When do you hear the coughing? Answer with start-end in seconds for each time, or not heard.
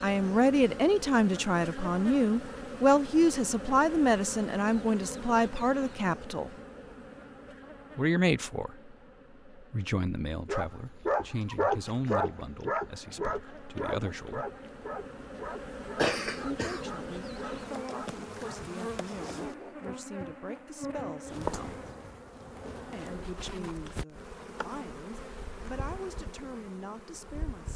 15.9-16.9.